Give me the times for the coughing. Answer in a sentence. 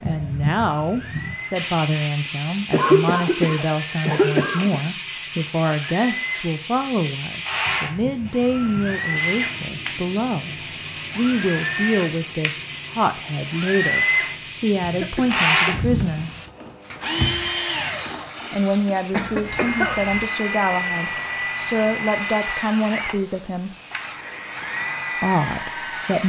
You can hear the coughing from 2.7 to 4.8 s, from 14.8 to 15.8 s and from 19.1 to 20.2 s.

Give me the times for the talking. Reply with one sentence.
The talking can be heard from 0.0 to 16.3 s, from 18.5 to 23.8 s and from 25.2 to 26.2 s.